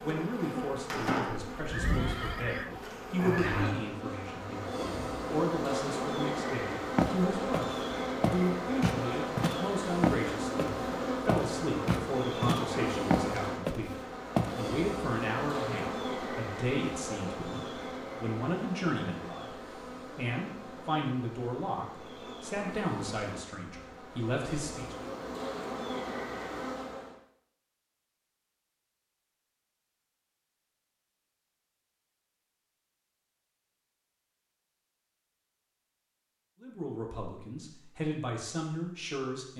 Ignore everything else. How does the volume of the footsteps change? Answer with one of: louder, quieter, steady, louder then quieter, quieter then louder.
steady.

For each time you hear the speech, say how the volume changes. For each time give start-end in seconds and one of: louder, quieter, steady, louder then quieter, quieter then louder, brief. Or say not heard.
0.0-24.9 steady
36.6-39.5 brief.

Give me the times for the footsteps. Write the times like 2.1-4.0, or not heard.
7.0-14.6.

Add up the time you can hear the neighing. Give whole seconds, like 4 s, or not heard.
2 s.